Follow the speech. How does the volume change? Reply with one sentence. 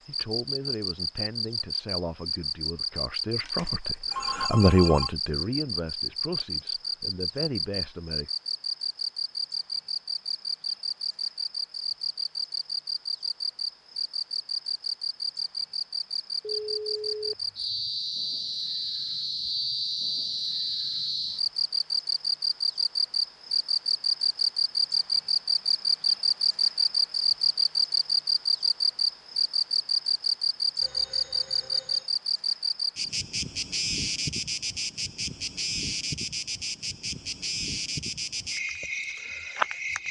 The volume of the speech goes up, then down.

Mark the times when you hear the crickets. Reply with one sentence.
You can hear the crickets from 0.0 to 40.0 s.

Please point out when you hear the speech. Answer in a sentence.
You can hear the speech from 0.1 to 8.3 s.